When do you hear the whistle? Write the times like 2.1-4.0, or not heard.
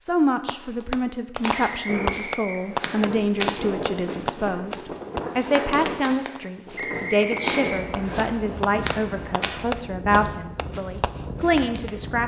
1.6-3.0, 6.8-8.3.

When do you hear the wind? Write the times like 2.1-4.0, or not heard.
1.9-12.2.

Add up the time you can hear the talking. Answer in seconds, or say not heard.
12 s.